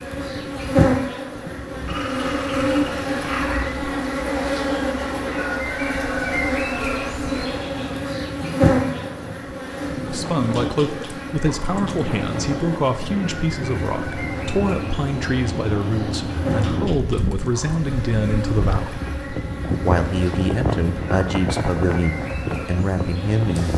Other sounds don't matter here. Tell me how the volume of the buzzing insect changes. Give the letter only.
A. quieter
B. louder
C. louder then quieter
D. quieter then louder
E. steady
A.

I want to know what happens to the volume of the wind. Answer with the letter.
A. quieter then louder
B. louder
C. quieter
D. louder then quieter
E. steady
B.